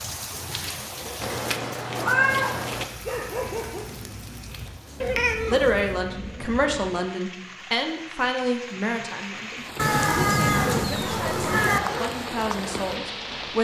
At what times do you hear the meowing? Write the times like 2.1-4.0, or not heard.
1.2-2.9, 5.0-7.0, 9.8-11.8.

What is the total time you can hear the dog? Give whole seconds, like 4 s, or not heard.
4 s.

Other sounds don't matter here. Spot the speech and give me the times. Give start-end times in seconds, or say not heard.
5.5-13.6.